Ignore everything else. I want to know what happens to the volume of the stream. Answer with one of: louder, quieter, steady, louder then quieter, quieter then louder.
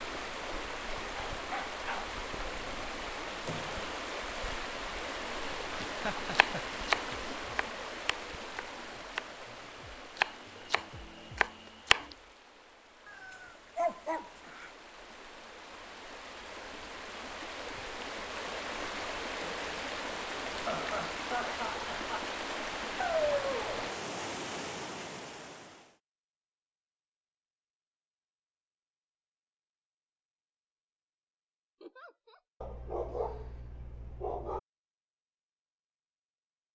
quieter then louder.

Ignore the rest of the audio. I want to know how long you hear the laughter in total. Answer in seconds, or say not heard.
3 s.